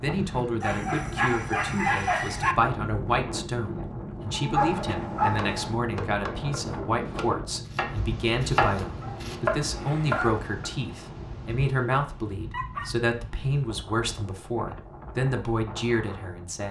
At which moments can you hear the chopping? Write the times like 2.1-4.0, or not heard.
5.3-10.8.